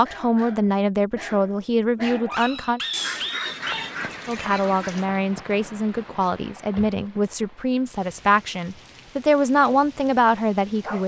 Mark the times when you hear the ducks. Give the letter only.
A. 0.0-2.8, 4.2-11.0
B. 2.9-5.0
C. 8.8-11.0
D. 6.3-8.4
B.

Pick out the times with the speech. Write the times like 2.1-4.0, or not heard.
0.0-2.8, 4.2-11.0.